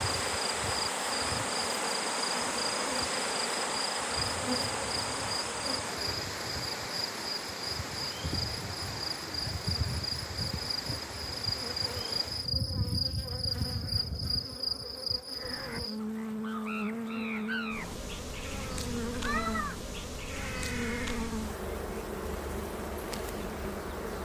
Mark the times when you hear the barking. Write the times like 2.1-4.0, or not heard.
not heard.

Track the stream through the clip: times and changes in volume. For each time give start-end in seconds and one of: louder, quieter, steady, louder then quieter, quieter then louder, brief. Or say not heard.
0.0-12.6 quieter.